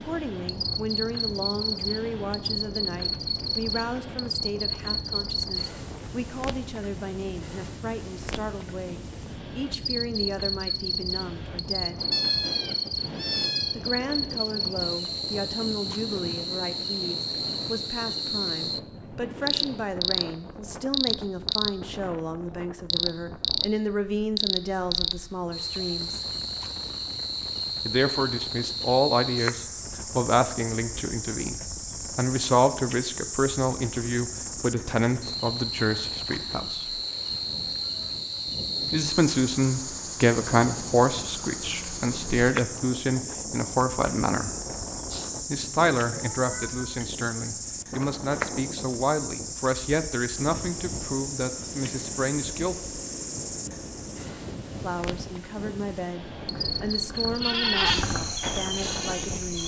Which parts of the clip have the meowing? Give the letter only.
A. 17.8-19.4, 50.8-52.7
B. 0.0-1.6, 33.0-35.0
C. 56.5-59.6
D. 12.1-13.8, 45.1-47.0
D.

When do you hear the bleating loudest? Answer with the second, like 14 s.
58 s.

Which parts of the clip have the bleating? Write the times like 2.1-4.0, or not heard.
56.5-59.6.